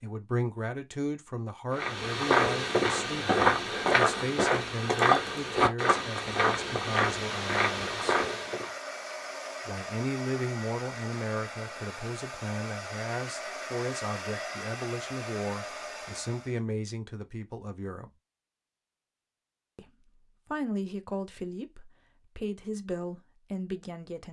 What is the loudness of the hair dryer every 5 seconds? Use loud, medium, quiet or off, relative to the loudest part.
off, loud, loud, loud, off.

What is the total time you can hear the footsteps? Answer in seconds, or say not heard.
7 s.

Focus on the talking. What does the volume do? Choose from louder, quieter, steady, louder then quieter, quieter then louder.
steady.